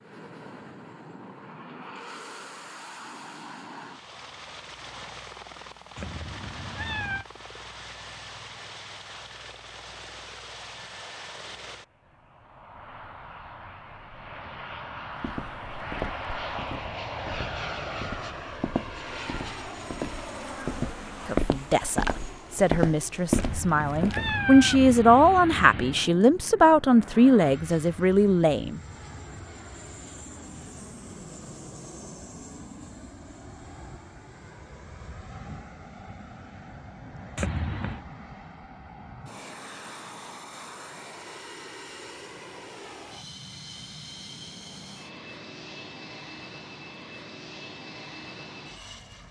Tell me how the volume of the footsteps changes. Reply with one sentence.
The volume of the footsteps goes up.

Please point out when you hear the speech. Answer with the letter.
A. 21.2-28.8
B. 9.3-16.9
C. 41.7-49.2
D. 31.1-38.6
A.